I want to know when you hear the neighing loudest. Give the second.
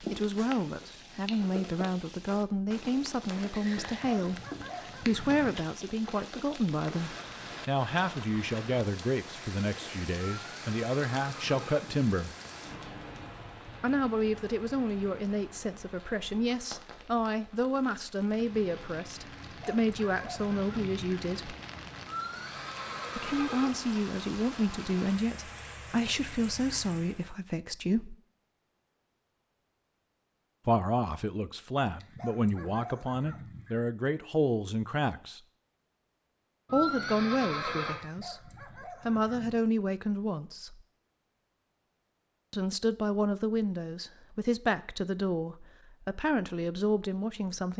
37 s.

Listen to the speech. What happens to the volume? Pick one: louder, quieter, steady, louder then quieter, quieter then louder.
steady.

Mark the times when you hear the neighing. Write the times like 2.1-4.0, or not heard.
10.2-11.8, 22.1-23.7, 36.6-38.0.